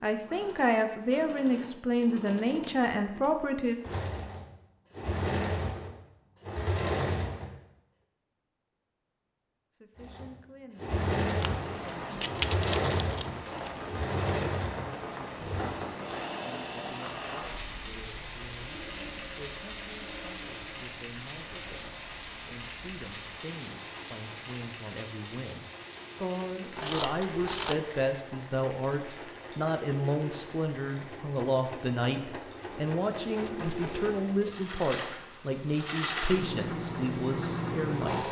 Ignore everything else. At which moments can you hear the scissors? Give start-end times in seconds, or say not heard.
11.2-13.8, 26.8-27.8.